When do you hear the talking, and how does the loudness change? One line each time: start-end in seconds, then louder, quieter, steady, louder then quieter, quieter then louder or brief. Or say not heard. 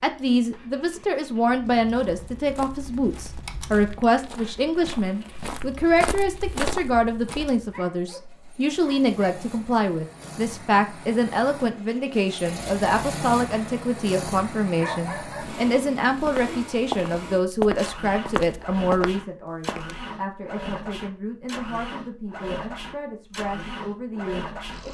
0.0-24.9 quieter.